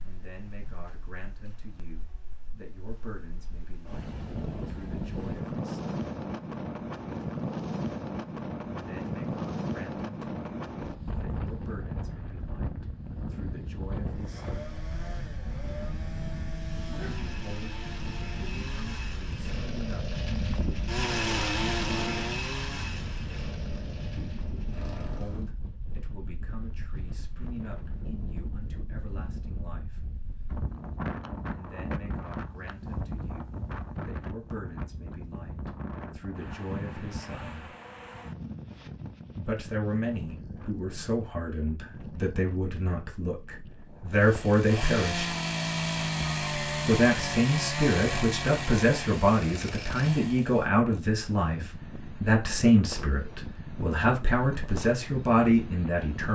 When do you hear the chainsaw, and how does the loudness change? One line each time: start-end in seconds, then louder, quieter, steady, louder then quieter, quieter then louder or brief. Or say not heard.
14.1-25.5 louder then quieter
44.1-50.6 quieter.